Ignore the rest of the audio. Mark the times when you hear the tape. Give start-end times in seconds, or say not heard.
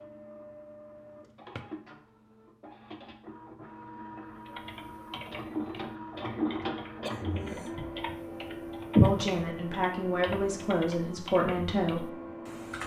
not heard.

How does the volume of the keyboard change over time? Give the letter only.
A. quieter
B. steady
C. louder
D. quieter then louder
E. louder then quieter
E.